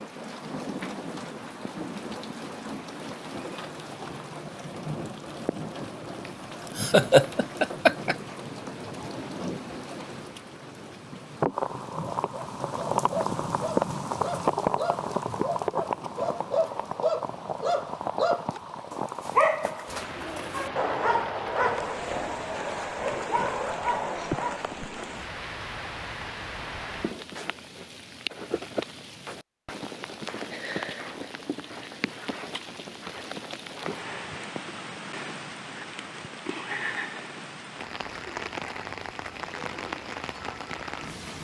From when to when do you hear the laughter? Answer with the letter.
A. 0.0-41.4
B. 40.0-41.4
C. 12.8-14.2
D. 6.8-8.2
D.